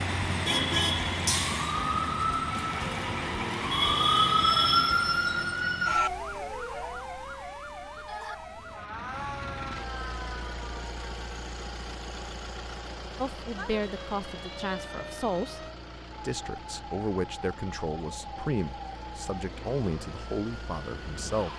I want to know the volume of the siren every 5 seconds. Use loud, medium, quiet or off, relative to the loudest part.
loud, medium, quiet, quiet, quiet.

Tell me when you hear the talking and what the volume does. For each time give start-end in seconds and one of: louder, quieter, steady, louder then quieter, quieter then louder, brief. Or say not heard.
13.2-21.5 steady.